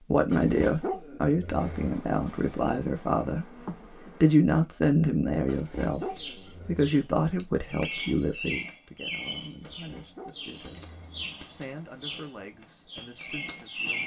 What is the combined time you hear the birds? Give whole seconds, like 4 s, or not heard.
8 s.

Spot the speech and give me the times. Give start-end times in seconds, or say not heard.
0.1-14.0.